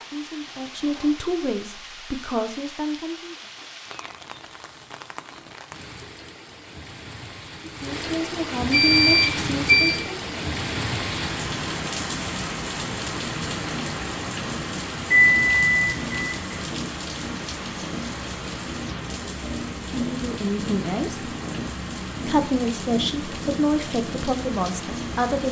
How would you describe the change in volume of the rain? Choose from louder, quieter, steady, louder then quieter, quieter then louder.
louder then quieter.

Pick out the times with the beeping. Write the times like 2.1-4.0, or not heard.
8.7-10.0, 15.1-16.6.